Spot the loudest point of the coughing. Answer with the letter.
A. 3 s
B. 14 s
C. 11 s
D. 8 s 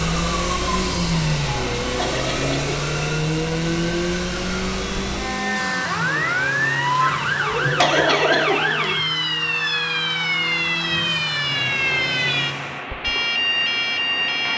D.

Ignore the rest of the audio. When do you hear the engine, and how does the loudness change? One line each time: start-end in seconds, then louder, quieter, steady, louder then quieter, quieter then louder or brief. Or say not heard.
0.0-12.9 quieter.